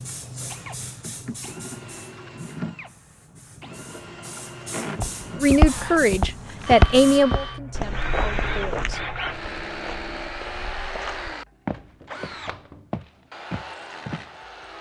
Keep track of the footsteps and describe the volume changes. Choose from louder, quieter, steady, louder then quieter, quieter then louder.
quieter.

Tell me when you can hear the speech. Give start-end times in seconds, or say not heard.
5.4-9.0.